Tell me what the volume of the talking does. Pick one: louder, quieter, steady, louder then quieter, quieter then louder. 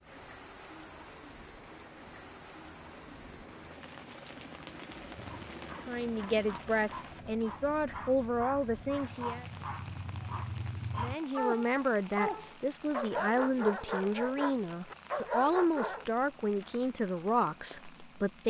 steady.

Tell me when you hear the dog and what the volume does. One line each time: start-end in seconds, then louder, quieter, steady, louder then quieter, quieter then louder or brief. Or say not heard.
5.2-16.1 louder.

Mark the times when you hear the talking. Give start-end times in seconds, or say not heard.
5.8-9.4, 10.9-18.4.